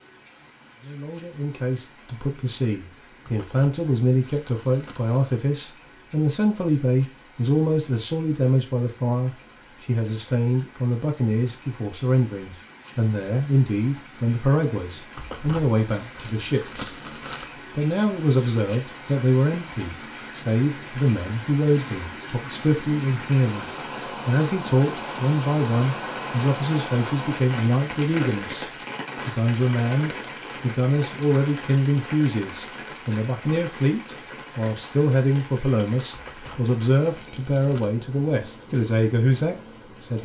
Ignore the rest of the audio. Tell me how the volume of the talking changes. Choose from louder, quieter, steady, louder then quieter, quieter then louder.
steady.